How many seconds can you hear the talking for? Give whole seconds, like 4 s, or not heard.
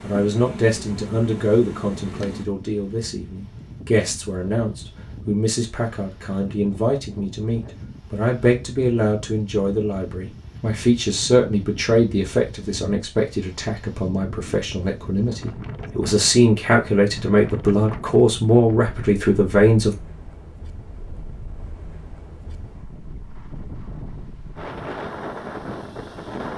20 s.